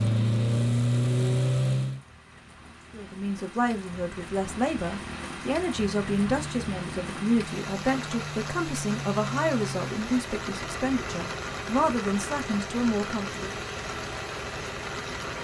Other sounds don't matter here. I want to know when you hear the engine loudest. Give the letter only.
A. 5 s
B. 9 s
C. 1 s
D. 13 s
C.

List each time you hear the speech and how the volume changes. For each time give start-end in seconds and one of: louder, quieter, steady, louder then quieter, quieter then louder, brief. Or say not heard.
2.9-13.7 steady.